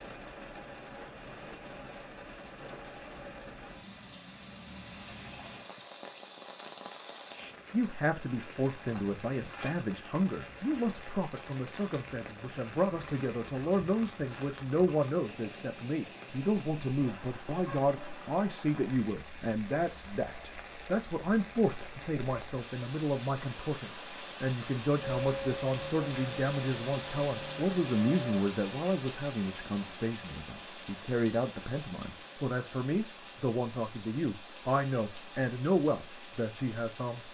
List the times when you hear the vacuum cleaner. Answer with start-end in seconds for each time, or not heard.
25.0-28.4.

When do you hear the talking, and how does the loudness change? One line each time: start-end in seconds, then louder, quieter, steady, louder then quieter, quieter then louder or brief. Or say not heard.
7.7-37.2 steady.